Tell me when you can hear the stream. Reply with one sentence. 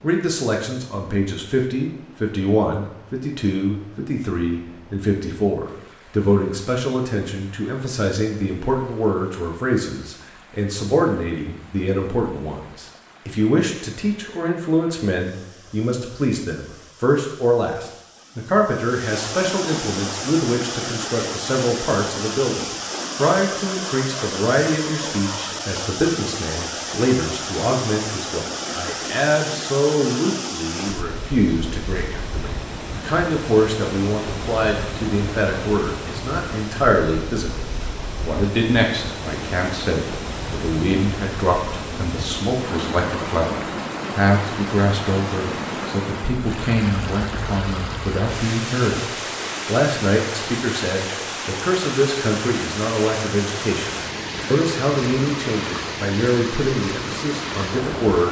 The stream can be heard from 0.0 to 58.2 s.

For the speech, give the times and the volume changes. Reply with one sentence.
You can hear the speech from 0.0 to 37.6 s, at a steady volume; and from 38.2 to 58.2 s, at a steady volume.